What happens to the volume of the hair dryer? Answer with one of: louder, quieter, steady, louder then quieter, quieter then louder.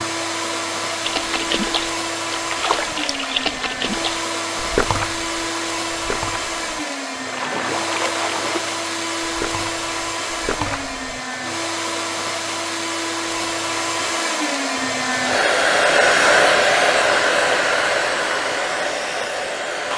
louder.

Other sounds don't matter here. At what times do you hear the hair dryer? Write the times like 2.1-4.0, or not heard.
0.0-19.9.